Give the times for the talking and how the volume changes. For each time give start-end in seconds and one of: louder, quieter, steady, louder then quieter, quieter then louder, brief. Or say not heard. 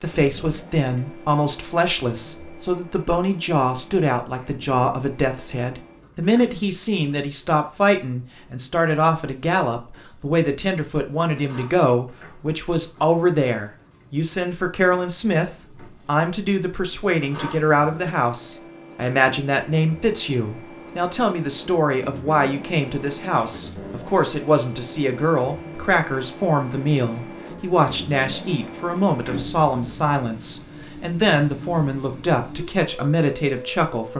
0.0-34.1 steady.